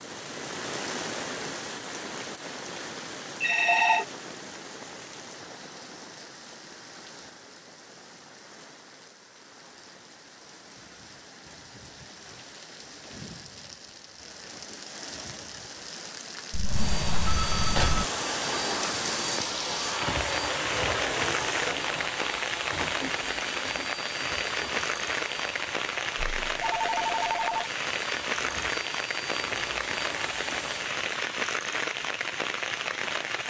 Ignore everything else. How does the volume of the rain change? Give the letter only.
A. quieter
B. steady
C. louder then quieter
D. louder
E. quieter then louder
E.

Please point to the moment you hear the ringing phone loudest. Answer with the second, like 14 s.
4 s.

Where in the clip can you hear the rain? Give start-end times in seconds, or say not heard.
0.0-33.4.